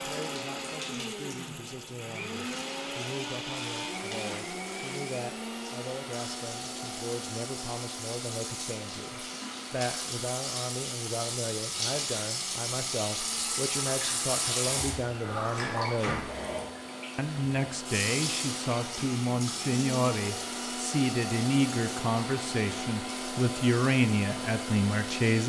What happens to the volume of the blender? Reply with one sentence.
The loudness of the blender goes down, then up.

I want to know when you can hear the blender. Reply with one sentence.
The blender can be heard from 0.0 to 25.4 s.